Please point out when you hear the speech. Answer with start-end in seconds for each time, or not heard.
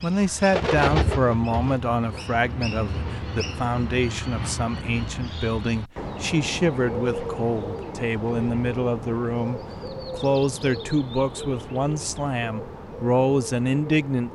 0.0-14.3.